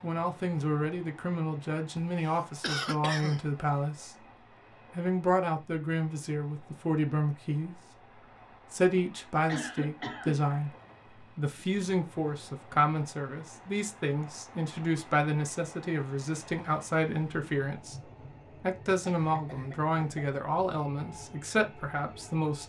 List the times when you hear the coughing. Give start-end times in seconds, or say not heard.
1.9-3.4, 9.4-10.5, 19.1-20.4.